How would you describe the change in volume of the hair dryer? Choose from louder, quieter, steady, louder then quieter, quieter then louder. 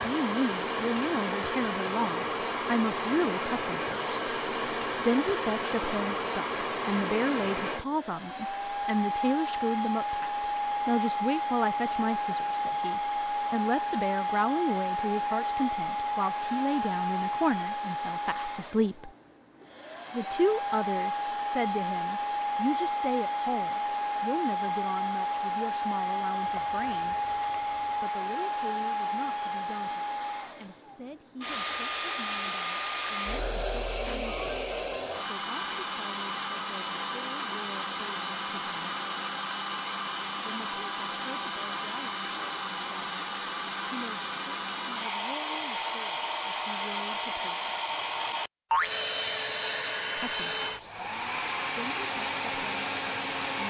steady.